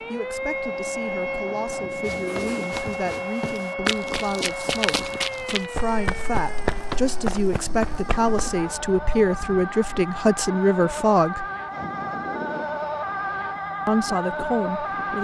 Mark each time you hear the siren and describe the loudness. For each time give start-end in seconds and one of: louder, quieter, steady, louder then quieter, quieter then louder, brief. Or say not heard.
0.0-15.1 quieter then louder.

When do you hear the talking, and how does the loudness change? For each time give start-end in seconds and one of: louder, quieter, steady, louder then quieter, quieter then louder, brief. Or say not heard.
0.0-11.4 louder
13.8-15.1 brief.